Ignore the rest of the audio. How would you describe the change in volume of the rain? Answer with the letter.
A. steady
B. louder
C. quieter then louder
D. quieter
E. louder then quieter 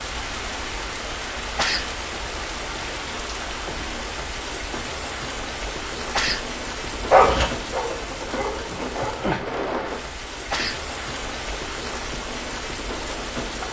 A.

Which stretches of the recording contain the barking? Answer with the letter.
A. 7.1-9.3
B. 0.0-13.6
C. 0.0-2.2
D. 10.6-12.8
A.